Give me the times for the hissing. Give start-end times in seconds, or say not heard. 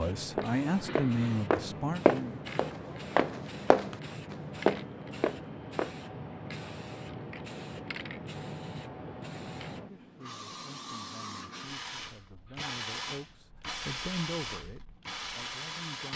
0.0-16.1.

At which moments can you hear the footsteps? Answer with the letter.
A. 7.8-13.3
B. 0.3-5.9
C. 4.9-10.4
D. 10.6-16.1
B.